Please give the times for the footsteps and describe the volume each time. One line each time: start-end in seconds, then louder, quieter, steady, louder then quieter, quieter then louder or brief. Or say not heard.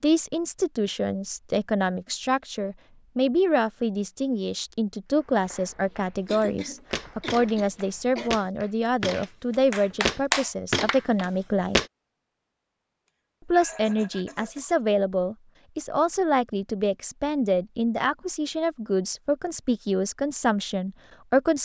6.4-11.8 louder.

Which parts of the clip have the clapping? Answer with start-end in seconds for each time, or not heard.
5.0-11.2.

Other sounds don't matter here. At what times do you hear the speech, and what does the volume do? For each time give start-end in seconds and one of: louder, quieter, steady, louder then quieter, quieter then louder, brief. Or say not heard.
0.0-11.8 steady
13.4-21.6 steady.